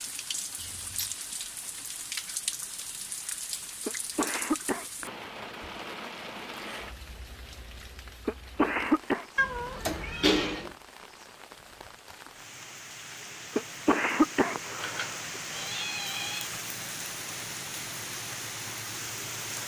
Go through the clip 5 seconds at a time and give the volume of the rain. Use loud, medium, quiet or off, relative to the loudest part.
loud, medium, medium, loud.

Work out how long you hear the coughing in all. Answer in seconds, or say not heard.
4 s.